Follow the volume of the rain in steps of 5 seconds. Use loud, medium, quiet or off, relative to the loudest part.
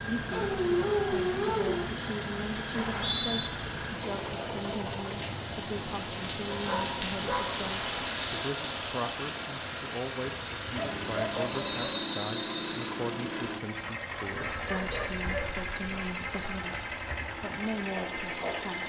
medium, loud, medium, medium.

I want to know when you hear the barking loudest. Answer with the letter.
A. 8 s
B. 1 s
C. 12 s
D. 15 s
B.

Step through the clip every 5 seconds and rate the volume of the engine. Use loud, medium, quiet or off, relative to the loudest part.
loud, medium, loud, loud.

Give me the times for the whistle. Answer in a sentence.
The whistle can be heard from 2.7 to 3.5 s and from 11.4 to 12.7 s.